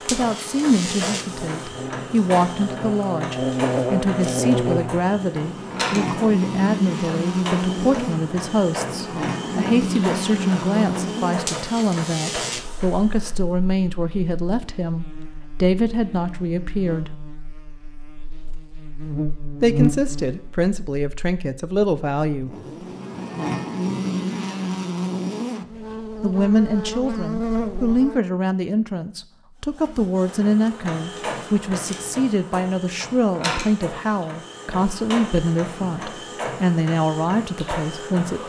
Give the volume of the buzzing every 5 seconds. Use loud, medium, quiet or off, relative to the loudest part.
loud, loud, loud, loud, loud, loud, off, off.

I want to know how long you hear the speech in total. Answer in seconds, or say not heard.
32 s.